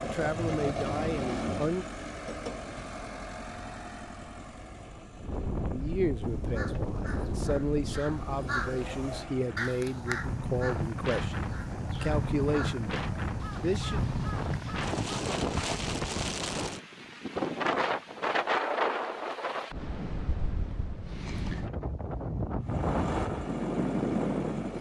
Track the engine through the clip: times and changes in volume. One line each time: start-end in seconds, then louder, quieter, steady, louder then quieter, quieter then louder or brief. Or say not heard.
0.0-9.7 quieter then louder
22.6-24.7 brief.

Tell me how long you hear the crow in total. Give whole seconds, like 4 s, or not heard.
9 s.